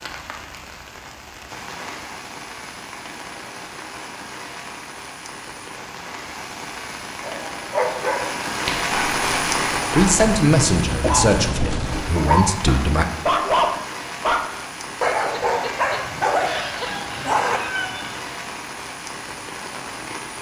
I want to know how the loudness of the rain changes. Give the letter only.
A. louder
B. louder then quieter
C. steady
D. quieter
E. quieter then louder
B.